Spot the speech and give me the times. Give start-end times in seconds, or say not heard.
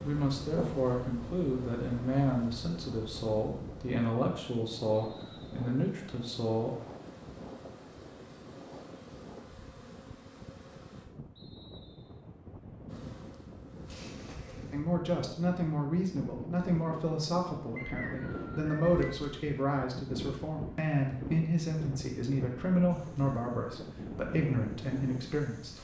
0.0-6.8, 14.7-25.7.